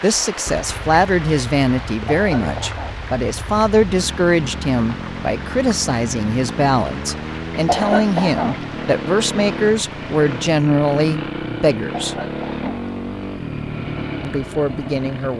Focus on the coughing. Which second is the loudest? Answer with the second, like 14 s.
8 s.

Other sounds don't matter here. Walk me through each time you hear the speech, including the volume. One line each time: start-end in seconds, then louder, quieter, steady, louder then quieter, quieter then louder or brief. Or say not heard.
0.0-12.2 steady
14.2-15.3 brief.